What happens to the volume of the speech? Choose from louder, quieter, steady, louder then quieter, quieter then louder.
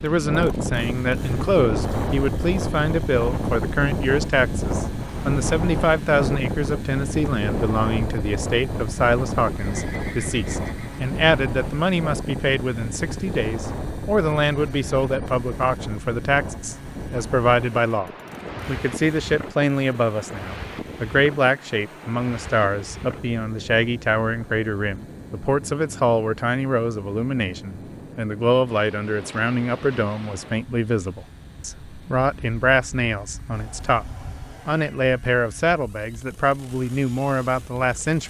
steady.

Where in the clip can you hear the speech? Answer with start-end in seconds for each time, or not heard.
0.0-38.2.